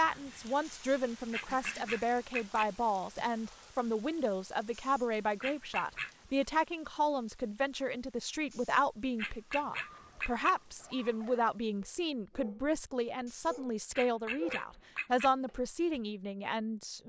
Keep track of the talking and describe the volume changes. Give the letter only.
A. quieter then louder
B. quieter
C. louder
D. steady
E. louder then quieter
D.